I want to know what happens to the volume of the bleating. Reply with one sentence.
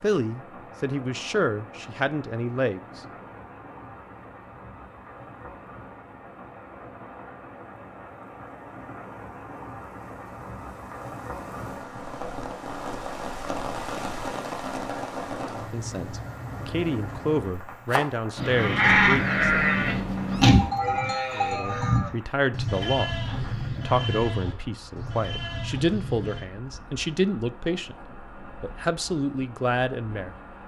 The loudness of the bleating goes down.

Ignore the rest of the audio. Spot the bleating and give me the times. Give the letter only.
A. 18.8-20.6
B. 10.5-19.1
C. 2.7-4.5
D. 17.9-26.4
D.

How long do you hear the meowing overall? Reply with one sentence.
The meowing can be heard for 2 seconds in total.